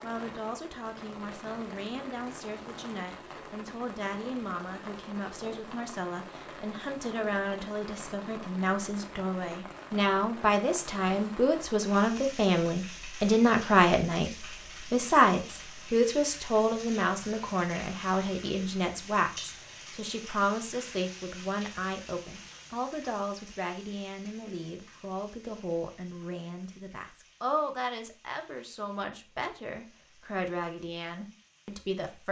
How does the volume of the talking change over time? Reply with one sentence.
The volume of the talking goes up, then down.